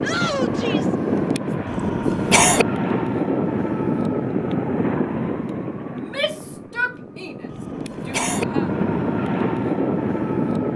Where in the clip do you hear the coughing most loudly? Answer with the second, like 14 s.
2 s.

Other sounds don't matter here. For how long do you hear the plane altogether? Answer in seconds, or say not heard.
11 s.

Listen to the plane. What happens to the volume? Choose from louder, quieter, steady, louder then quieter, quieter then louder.
quieter then louder.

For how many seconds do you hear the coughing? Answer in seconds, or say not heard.
2 s.